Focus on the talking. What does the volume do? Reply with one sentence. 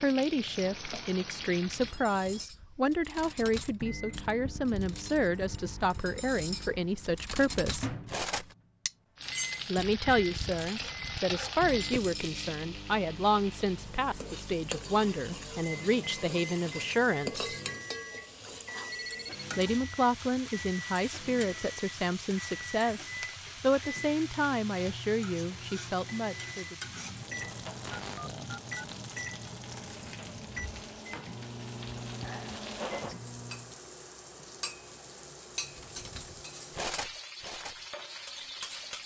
The volume of the talking stays about the same.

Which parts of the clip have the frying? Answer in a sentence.
You can hear the frying from 0.0 to 1.9 s and from 9.2 to 39.0 s.